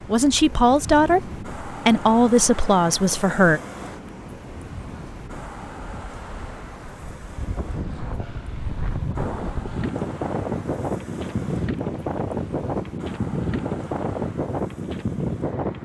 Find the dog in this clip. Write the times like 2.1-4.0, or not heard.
not heard.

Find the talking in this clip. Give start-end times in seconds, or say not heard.
0.1-3.6.